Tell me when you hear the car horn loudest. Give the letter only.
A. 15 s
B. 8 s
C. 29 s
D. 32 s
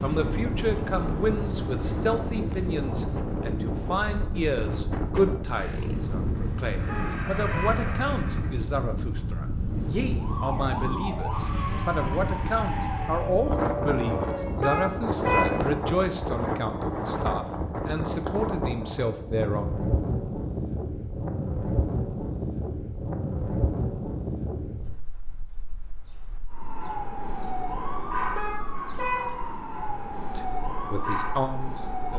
A.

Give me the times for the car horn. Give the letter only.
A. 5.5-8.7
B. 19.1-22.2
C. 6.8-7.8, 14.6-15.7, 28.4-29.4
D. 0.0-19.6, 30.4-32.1
C.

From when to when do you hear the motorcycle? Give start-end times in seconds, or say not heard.
5.5-8.7.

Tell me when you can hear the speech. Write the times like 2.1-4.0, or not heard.
0.0-19.6, 30.4-32.1.